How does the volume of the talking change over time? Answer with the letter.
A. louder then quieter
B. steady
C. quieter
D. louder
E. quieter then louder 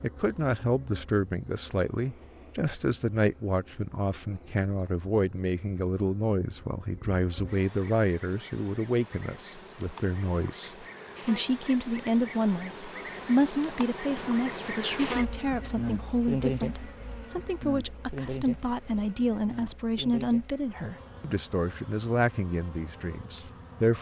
B.